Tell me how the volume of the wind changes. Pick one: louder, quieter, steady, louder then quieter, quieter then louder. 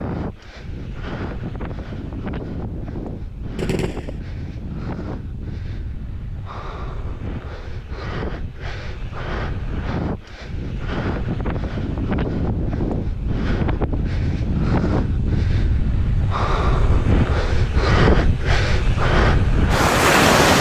louder.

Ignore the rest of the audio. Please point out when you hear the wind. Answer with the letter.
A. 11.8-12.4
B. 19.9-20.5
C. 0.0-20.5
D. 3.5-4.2
C.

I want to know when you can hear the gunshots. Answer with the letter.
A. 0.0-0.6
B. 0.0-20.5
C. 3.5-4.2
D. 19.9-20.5
C.